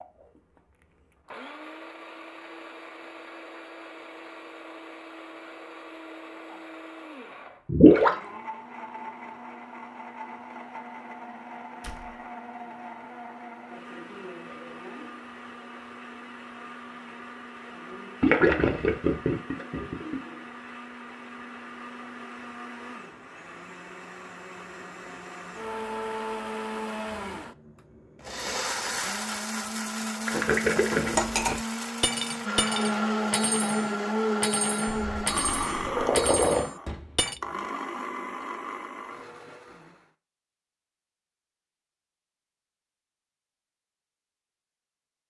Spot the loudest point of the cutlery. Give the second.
31 s.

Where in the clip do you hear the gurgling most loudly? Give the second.
8 s.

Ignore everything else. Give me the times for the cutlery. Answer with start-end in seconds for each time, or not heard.
31.0-37.4.